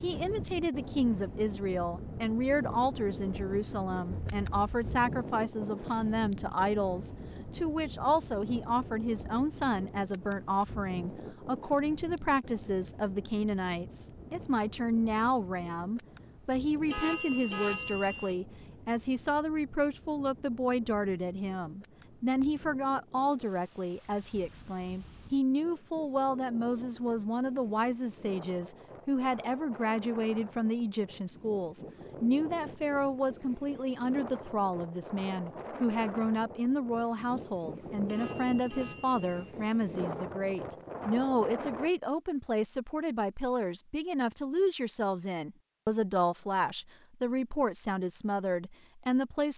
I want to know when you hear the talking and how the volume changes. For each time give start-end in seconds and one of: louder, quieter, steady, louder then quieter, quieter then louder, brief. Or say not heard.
0.0-49.5 steady.